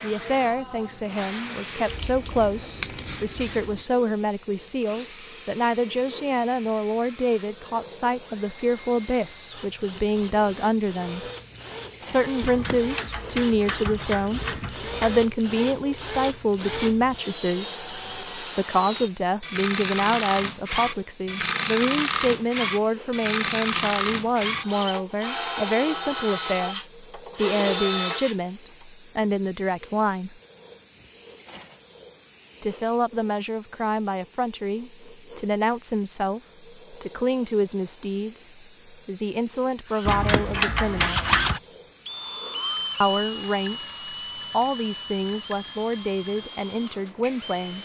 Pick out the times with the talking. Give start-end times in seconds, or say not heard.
0.0-11.2, 12.0-14.4, 15.0-30.4, 32.6-41.2, 43.0-47.7.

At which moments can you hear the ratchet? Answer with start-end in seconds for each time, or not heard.
12.4-15.2, 40.0-41.6.